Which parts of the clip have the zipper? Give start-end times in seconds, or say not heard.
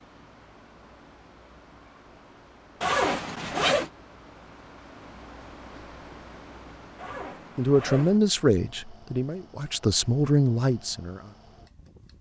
2.8-3.9, 7.0-8.2.